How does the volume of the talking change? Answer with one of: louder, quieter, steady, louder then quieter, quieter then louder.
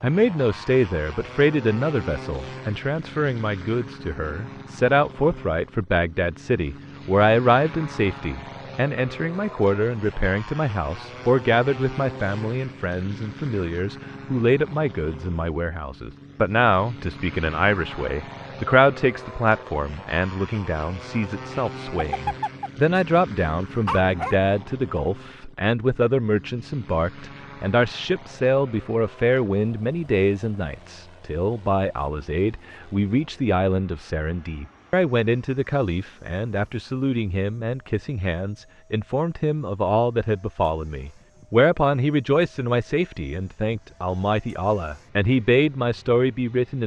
steady.